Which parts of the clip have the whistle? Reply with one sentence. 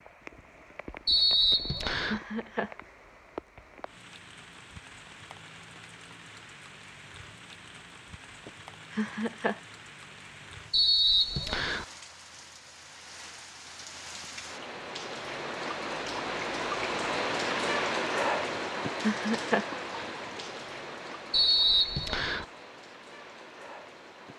You can hear the whistle from 1.1 to 2.2 s, from 10.7 to 11.8 s and from 21.3 to 22.4 s.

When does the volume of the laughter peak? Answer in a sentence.
The loudest moment of the laughter is at 19 seconds.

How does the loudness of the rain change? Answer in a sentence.
The volume of the rain goes up, then down.